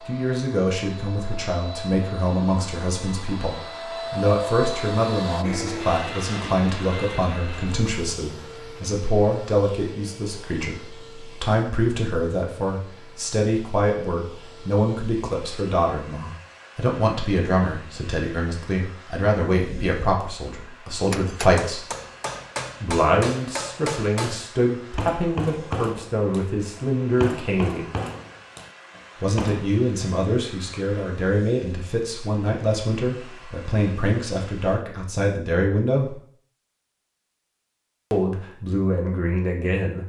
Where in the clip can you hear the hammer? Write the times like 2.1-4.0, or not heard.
21.1-29.8.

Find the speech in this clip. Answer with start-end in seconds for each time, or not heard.
0.1-21.9, 22.8-27.9, 29.2-36.2, 38.1-40.0.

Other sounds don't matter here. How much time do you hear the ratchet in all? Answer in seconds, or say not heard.
not heard.